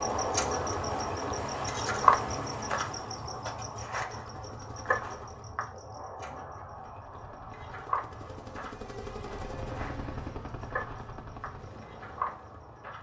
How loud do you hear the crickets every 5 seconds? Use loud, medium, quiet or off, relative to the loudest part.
loud, medium, medium.